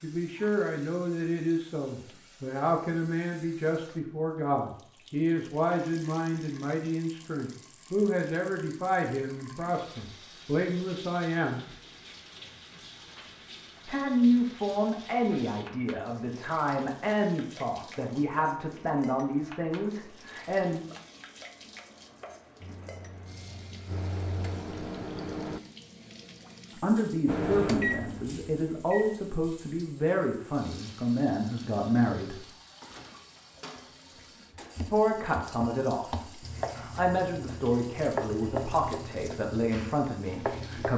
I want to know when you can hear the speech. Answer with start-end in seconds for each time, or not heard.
0.0-11.6, 13.8-20.8, 26.8-32.5, 34.9-40.9.